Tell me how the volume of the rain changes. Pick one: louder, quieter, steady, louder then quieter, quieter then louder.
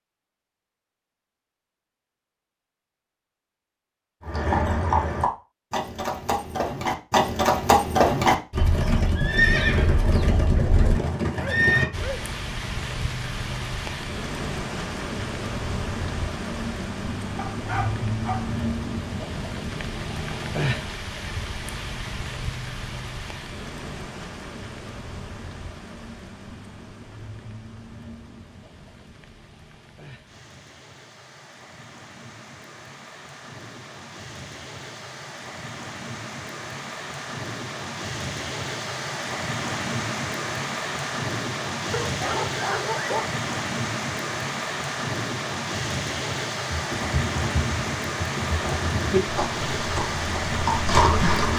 quieter then louder.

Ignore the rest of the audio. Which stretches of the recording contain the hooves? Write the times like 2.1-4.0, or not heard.
4.2-12.1, 46.7-51.5.